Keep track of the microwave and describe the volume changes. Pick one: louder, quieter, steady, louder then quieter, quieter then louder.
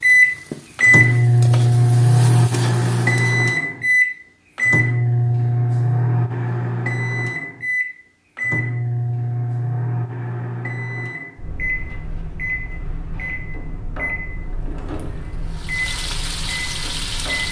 quieter.